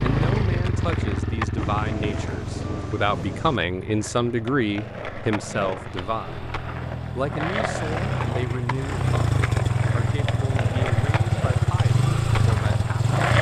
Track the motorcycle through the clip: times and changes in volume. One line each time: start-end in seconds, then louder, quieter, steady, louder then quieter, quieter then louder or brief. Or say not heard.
0.0-13.3 quieter then louder.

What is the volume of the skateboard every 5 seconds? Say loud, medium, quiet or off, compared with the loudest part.
medium, loud, loud.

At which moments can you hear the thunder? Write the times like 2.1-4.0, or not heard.
1.6-3.6.